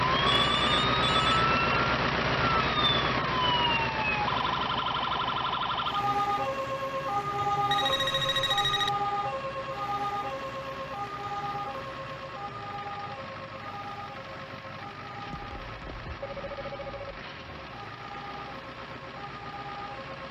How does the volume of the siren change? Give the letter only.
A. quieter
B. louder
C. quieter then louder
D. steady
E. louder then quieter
A.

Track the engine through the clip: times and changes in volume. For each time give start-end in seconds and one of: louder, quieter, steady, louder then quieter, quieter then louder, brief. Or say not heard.
0.0-20.2 quieter.